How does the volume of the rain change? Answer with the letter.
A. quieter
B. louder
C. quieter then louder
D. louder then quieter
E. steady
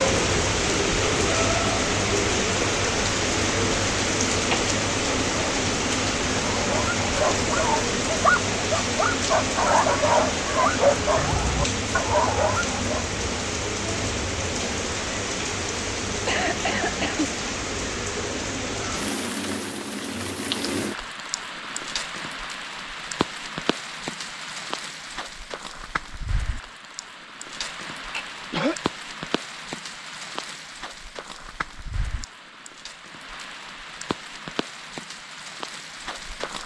A.